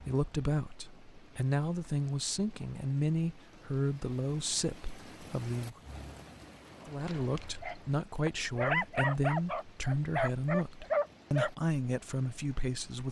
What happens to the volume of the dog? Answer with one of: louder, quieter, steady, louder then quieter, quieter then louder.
louder.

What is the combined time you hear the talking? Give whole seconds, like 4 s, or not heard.
12 s.